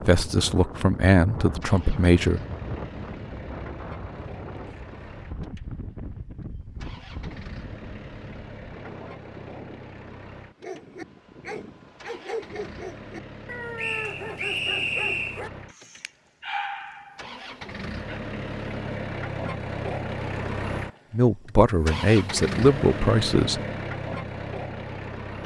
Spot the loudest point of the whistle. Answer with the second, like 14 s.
15 s.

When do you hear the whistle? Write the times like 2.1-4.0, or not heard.
13.8-15.4.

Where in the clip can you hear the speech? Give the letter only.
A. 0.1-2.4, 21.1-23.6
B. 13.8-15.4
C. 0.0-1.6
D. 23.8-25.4
A.